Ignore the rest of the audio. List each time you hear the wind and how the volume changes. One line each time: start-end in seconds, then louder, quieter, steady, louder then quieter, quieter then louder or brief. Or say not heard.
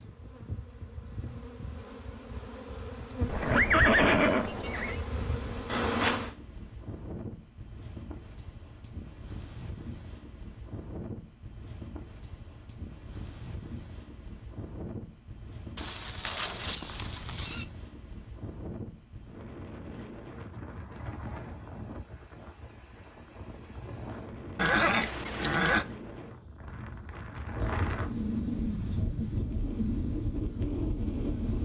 5.2-31.6 louder.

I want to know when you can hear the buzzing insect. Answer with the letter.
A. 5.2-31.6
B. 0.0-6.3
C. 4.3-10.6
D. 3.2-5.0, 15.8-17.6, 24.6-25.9
B.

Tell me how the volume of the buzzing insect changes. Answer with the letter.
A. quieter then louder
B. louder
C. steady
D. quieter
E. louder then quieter
B.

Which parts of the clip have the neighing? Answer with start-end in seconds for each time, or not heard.
3.2-5.0, 15.8-17.6, 24.6-25.9.